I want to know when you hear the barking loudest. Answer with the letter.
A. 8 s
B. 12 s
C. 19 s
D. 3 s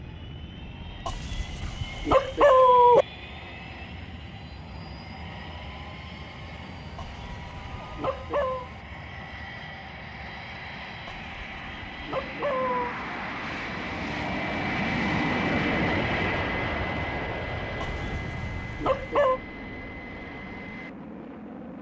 D.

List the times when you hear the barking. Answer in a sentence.
The barking can be heard from 1.1 to 3.0 s, from 7.0 to 8.7 s, from 11.1 to 12.9 s and from 17.8 to 19.4 s.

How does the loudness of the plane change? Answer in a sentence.
The loudness of the plane goes up, then down.